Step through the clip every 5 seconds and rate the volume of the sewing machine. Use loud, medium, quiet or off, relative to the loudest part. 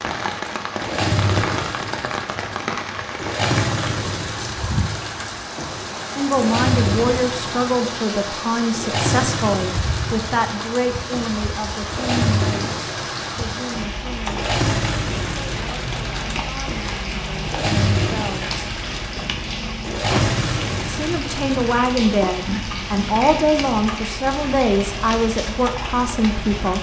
loud, loud, loud, loud, loud, off.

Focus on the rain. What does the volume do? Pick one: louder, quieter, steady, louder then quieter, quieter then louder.
steady.